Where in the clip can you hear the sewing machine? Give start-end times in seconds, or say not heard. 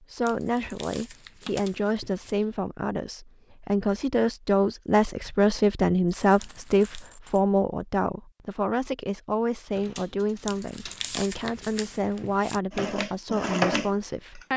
12.7-14.5.